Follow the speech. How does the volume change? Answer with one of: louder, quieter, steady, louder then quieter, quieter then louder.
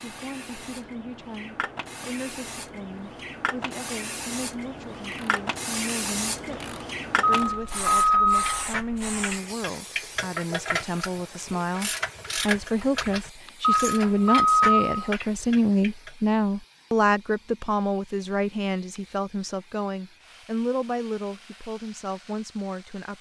louder then quieter.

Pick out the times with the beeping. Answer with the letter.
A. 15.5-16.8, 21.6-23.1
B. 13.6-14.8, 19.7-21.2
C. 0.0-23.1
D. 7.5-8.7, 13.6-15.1
D.